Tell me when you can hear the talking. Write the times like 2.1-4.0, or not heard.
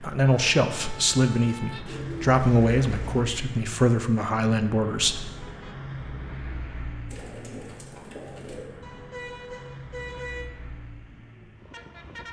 0.0-5.2.